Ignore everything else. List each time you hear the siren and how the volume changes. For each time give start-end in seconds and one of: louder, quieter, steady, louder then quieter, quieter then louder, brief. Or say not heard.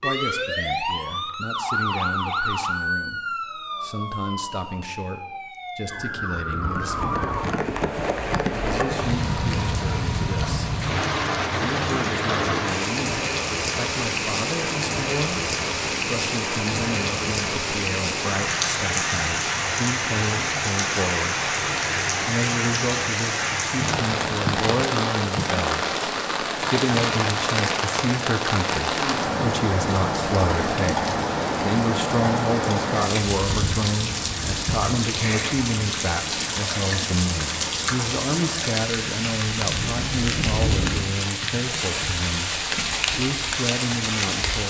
0.0-7.6 quieter then louder.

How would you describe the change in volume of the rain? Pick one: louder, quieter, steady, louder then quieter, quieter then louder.
steady.